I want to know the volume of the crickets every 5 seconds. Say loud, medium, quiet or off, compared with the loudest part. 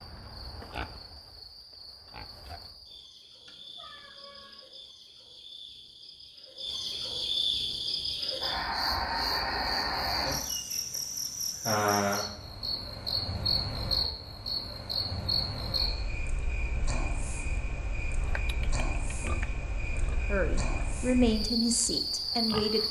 quiet, loud, loud, medium, loud.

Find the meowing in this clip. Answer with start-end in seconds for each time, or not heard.
3.5-4.7.